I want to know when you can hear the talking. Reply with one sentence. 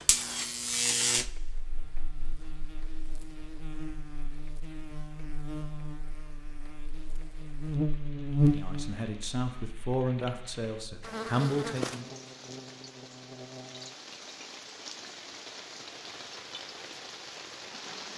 The talking can be heard from 8.5 to 12.1 s.